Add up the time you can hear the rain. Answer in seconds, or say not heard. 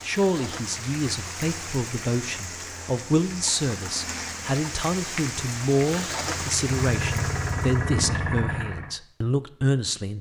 8 s.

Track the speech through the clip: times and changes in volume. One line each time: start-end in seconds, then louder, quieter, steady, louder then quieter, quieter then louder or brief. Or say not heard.
0.0-10.1 steady.